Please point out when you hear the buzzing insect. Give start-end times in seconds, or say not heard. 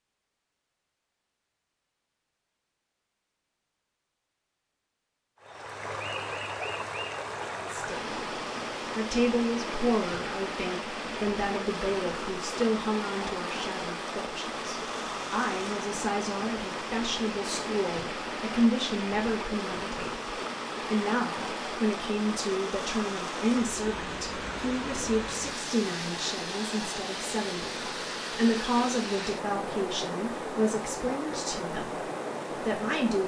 not heard.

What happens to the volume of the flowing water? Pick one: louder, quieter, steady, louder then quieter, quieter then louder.
steady.